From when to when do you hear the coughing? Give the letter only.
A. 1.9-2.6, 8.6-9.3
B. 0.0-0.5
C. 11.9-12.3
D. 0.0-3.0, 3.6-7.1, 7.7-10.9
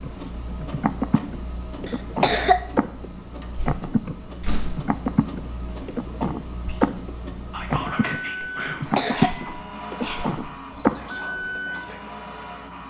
A.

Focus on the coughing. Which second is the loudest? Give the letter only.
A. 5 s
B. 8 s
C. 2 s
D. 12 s
C.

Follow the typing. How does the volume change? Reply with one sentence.
The volume of the typing goes up.